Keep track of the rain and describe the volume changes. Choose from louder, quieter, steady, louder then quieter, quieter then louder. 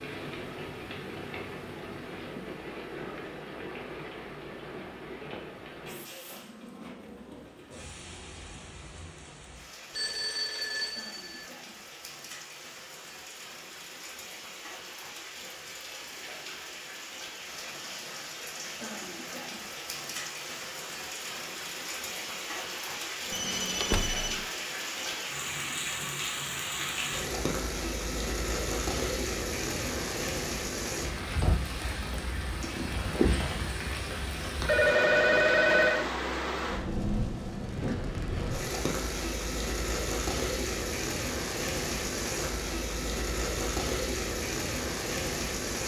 louder.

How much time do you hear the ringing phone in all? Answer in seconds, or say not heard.
4 s.